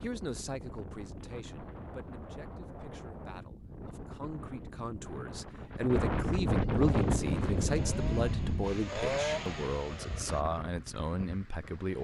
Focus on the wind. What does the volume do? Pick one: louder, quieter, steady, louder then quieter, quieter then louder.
louder then quieter.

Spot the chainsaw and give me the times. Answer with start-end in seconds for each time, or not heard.
6.8-10.4.